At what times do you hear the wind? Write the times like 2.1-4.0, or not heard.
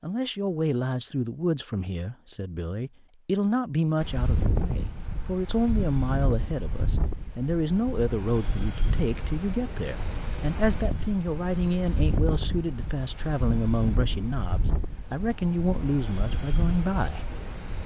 4.0-17.8.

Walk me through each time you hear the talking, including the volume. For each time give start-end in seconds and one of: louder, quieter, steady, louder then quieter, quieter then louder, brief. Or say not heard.
0.0-17.2 steady.